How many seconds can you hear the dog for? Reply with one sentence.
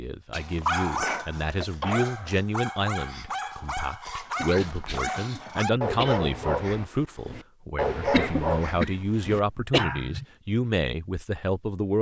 The dog can be heard for 10 seconds in total.